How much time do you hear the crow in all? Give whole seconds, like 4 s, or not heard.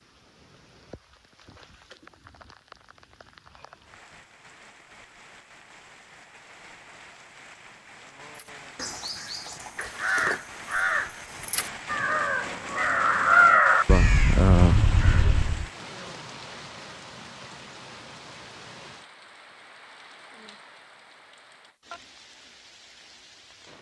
7 s.